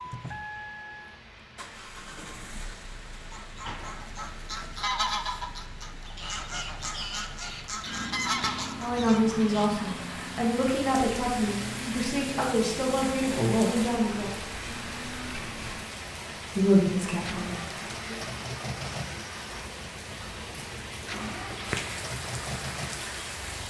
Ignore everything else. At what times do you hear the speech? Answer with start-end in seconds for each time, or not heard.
8.8-14.3, 16.6-18.1.